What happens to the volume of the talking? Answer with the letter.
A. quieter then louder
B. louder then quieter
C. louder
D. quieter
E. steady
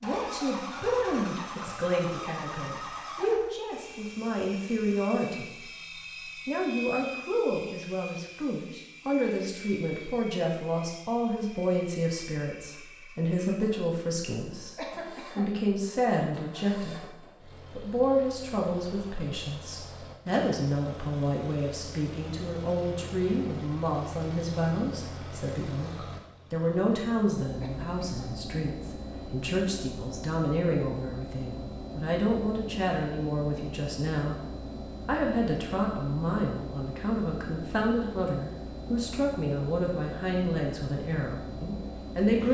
E.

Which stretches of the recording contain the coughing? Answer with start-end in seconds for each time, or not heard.
14.8-15.6, 27.6-28.4.